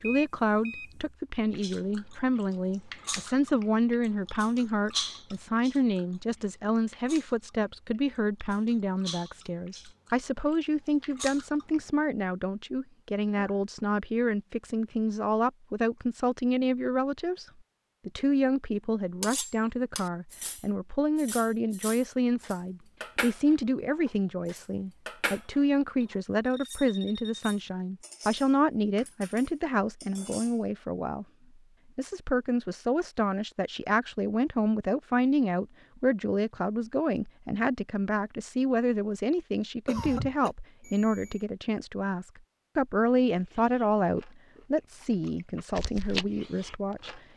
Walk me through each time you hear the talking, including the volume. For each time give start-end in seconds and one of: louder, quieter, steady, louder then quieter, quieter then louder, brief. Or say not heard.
0.0-17.4 steady
18.1-31.2 steady
31.9-47.2 steady.